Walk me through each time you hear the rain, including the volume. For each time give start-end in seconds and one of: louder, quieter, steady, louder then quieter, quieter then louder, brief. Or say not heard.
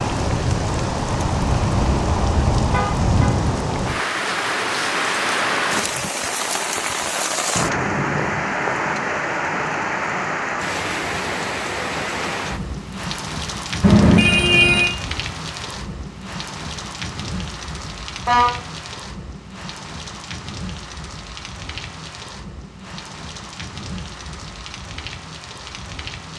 0.0-26.3 quieter.